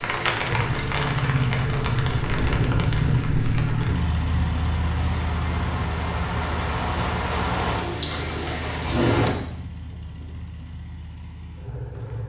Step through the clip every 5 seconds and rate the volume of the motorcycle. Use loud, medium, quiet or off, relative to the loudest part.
loud, medium, quiet.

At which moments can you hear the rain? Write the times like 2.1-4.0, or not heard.
0.0-9.3.